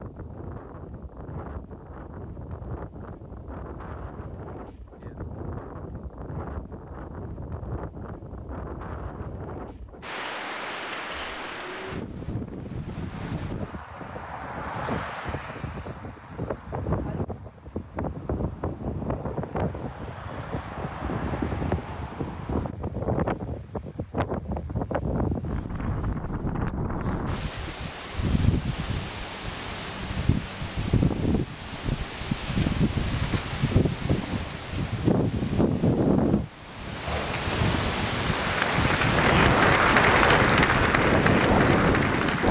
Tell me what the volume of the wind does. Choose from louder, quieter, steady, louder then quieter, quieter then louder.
louder.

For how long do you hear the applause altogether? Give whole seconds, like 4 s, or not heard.
4 s.